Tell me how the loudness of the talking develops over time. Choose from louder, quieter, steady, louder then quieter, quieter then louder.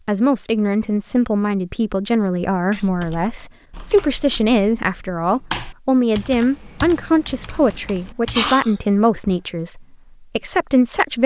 steady.